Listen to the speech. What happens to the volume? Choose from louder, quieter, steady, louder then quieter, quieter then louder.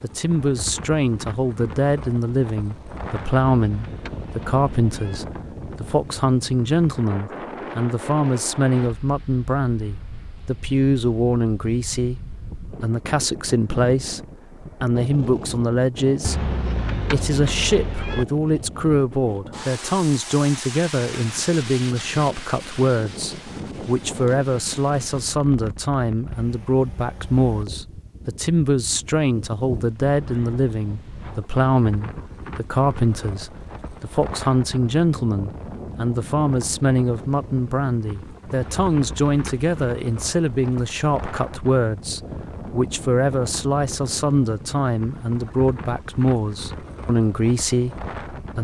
steady.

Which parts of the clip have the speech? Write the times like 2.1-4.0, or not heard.
0.0-48.5.